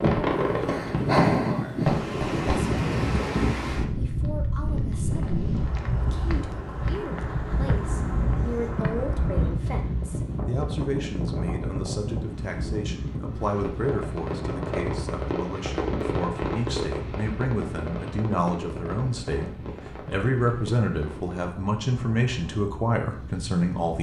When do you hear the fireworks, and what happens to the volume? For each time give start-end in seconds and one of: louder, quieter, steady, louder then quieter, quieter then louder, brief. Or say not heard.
0.0-2.6 brief
13.4-21.4 quieter.